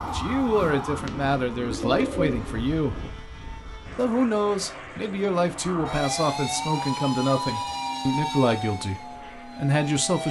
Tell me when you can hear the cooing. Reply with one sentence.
You can hear the cooing from 1.1 to 2.6 s.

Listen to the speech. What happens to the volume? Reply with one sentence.
The volume of the speech stays about the same.